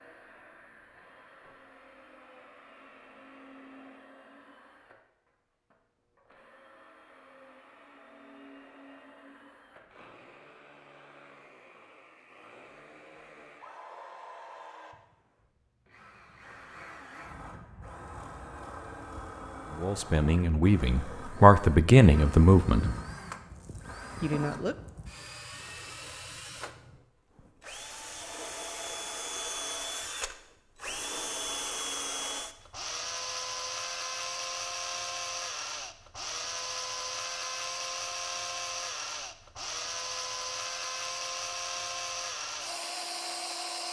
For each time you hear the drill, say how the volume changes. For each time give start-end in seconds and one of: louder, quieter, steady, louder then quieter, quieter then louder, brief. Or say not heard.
0.0-43.8 louder.